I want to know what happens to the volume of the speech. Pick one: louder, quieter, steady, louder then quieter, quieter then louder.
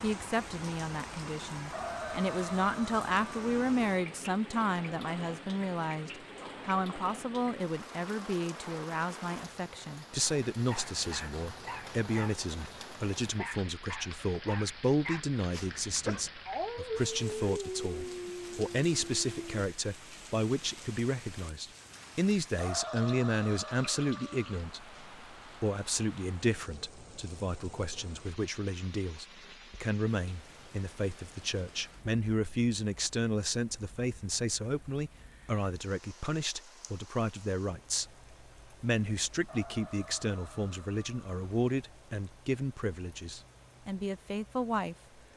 steady.